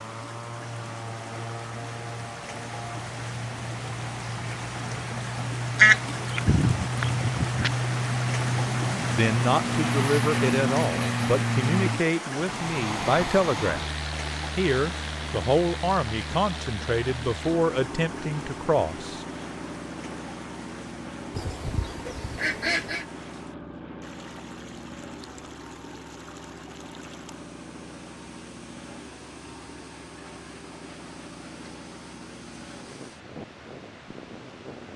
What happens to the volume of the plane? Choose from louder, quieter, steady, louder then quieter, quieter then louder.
louder then quieter.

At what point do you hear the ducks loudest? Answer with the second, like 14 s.
6 s.